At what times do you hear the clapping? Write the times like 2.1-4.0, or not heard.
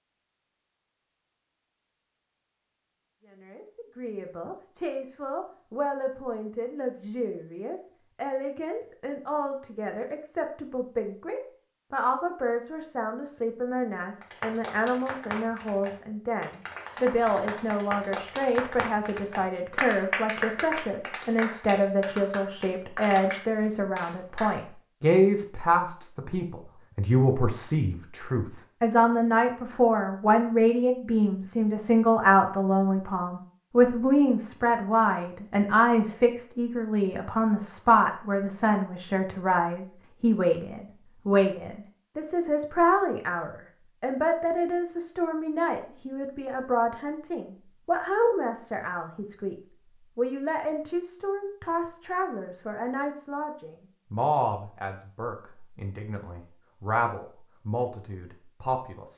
14.2-24.6.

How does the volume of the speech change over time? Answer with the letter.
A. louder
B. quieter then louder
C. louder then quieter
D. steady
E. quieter
C.